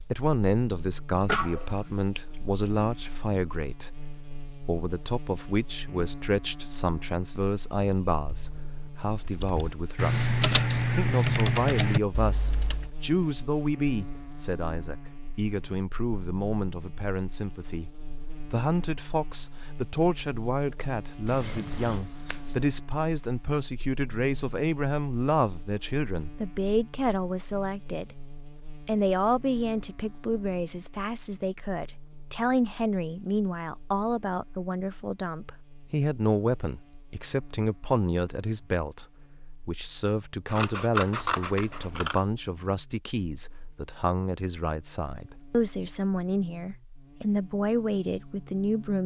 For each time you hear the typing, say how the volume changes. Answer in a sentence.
The typing can be heard from 7.8 to 12.9 s, getting louder.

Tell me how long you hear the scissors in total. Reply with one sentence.
You can hear the scissors for 4 seconds altogether.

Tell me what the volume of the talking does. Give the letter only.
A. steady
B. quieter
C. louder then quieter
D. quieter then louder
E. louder
A.